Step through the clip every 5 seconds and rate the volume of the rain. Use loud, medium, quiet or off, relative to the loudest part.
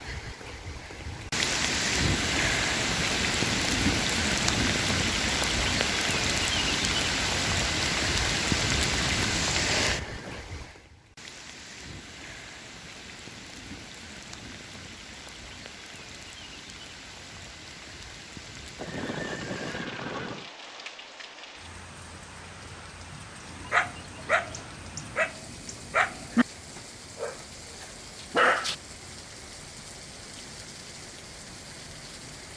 loud, loud, quiet, quiet, quiet, quiet, quiet.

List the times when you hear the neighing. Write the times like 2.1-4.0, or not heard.
9.8-10.4, 18.8-20.5.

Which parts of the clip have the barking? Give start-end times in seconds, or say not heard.
23.5-28.8.